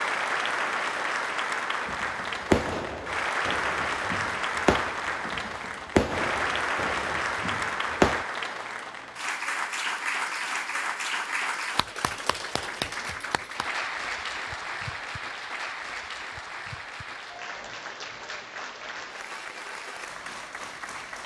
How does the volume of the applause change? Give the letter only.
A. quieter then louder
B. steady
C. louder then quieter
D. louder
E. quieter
E.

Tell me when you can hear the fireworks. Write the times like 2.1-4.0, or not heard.
1.9-8.2.